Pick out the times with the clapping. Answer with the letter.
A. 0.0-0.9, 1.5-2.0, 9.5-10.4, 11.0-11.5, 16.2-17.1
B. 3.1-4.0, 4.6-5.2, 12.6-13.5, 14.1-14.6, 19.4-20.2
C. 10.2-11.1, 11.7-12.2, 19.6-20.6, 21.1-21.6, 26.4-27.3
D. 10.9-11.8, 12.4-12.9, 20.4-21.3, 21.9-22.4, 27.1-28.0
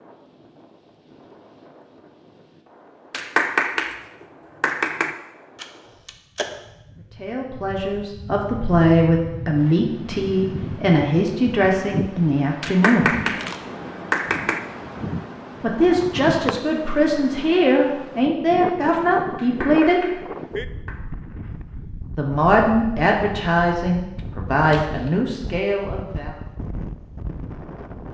B.